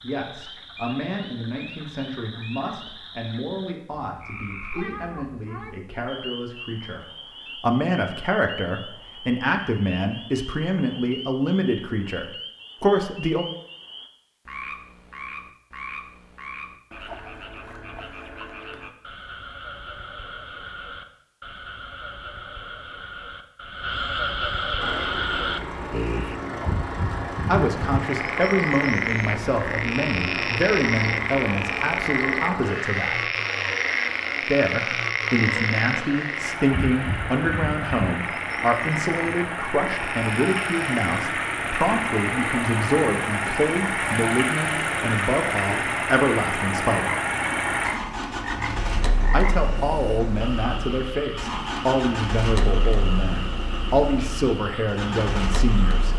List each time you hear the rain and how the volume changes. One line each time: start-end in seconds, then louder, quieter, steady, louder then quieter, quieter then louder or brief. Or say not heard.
not heard.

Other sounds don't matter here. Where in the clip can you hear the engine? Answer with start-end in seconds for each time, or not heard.
24.8-56.1.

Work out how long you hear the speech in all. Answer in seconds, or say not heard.
39 s.